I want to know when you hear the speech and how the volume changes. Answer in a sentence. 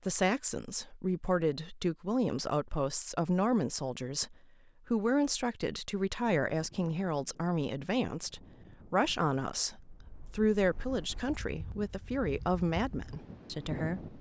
The speech can be heard from 0.1 to 14.1 s, at a steady volume.